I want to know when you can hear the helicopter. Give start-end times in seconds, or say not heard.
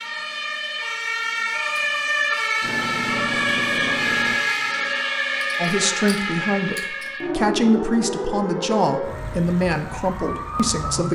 2.6-4.5.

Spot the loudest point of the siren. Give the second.
4 s.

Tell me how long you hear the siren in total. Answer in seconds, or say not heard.
11 s.